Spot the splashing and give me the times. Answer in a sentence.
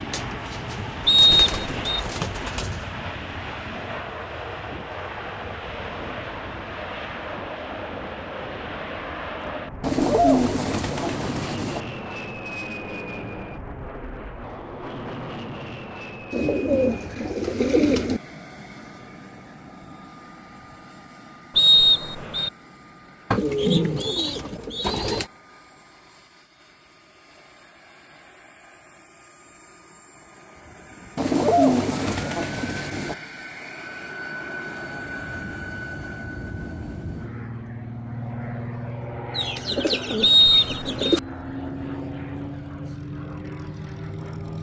The splashing can't be heard in this clip.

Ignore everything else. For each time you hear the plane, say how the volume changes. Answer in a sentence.
You can hear the plane from 0.0 to 44.5 s, getting quieter then louder.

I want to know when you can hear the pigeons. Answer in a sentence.
You can hear the pigeons from 0.1 to 3.0 s, from 9.8 to 11.8 s, from 16.3 to 18.2 s, from 23.3 to 25.2 s, from 31.1 to 33.1 s and from 39.4 to 41.2 s.